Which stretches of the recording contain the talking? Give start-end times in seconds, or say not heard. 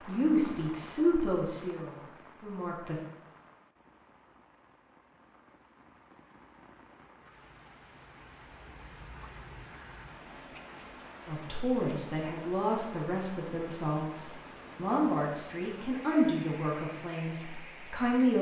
0.1-3.0, 11.2-18.3.